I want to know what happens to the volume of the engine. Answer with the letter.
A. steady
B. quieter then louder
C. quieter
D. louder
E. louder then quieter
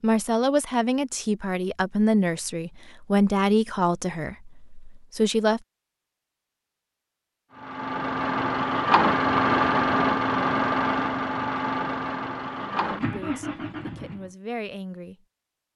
C.